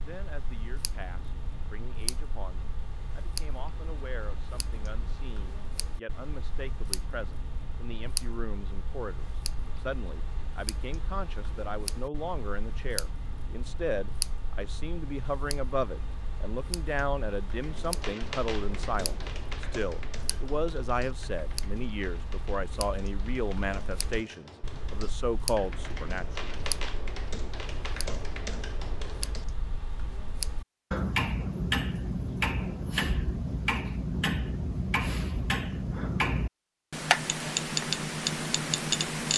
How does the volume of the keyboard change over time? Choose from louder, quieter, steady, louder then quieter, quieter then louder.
quieter then louder.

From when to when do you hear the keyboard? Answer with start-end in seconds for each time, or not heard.
17.5-29.4.